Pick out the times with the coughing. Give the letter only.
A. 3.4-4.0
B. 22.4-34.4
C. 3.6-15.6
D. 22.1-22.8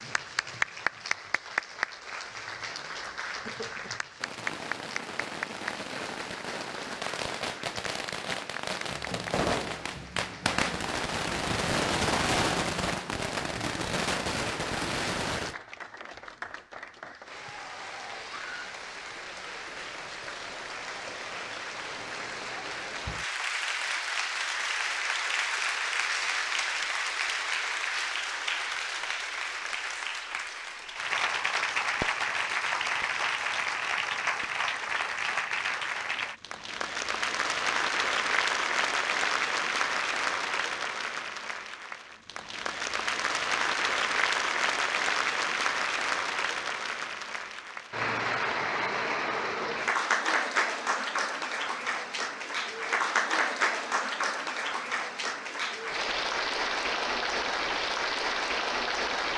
A.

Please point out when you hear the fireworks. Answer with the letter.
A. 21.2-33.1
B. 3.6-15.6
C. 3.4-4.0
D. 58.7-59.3
B.